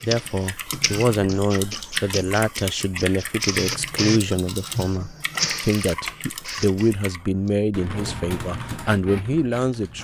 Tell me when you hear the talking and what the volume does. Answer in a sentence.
The talking can be heard from 0.0 to 9.9 s, at a steady volume.